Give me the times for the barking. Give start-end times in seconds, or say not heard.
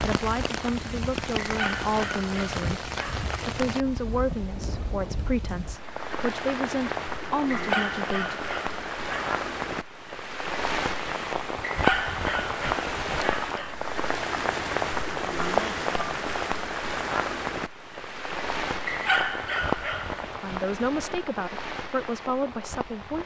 1.4-3.3, 7.5-9.3, 11.7-13.8, 18.9-20.2.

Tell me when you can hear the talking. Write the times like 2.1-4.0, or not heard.
0.0-8.3, 20.4-23.2.